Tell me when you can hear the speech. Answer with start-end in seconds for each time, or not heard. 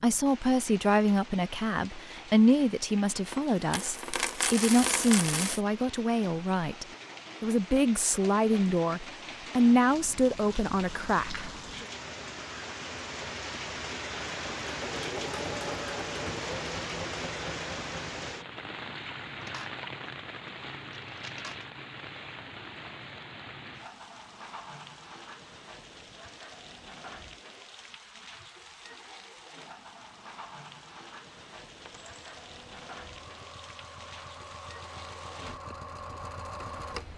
0.0-11.8.